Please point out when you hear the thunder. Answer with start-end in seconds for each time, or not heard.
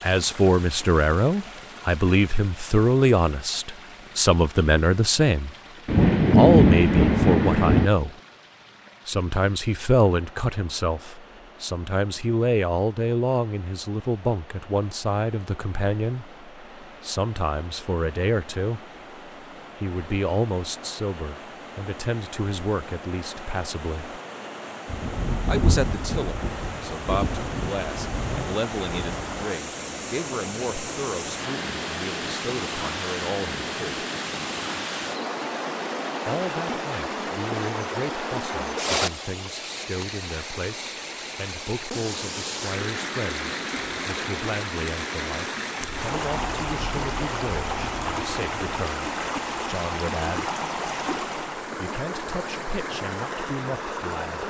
5.8-7.9, 24.9-29.4, 45.8-48.9.